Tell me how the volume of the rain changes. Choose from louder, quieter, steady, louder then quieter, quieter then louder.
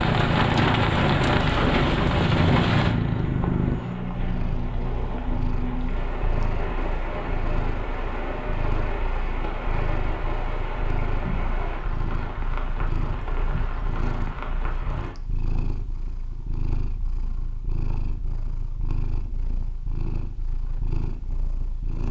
quieter.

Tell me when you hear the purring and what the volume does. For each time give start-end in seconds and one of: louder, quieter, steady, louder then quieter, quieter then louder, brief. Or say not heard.
0.0-22.0 quieter.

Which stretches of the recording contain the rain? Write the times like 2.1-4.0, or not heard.
0.0-15.2.